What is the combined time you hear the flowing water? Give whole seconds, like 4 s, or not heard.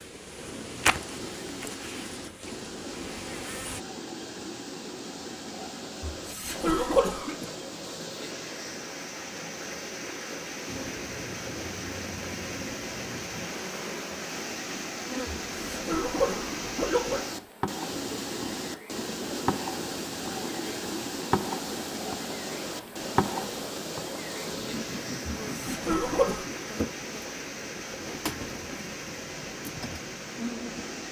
31 s.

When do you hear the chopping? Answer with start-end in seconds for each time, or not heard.
not heard.